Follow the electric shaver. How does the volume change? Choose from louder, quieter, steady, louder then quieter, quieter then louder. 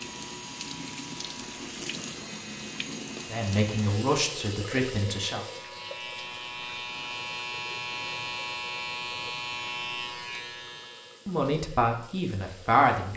louder.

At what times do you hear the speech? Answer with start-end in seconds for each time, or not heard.
3.3-5.5, 11.2-13.1.